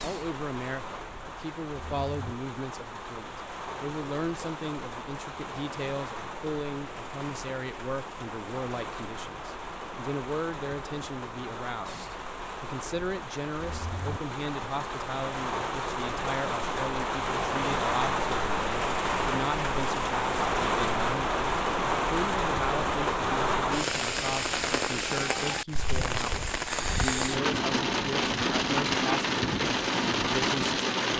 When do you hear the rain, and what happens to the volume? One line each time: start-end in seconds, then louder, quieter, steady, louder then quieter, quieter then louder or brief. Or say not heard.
0.0-31.1 louder.